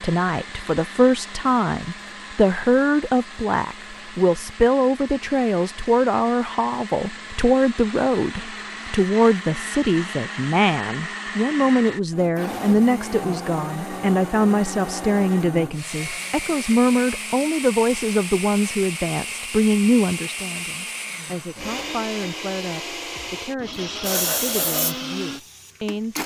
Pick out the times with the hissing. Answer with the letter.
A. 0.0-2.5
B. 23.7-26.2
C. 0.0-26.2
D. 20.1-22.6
B.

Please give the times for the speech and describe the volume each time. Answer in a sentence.
You can hear the speech from 0.0 to 26.2 s, getting quieter.